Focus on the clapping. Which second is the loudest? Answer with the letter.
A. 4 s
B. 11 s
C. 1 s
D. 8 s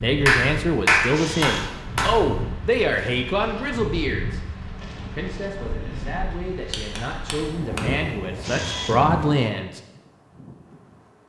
C.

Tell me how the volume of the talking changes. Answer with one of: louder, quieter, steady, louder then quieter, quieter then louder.
quieter then louder.